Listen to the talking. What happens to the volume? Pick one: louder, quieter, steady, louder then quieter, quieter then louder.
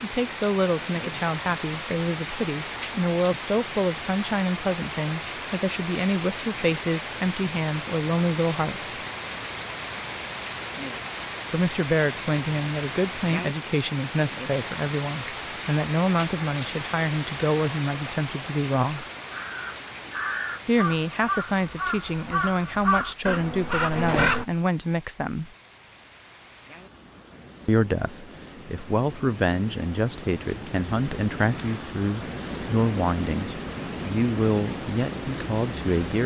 steady.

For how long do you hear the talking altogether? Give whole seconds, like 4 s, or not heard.
30 s.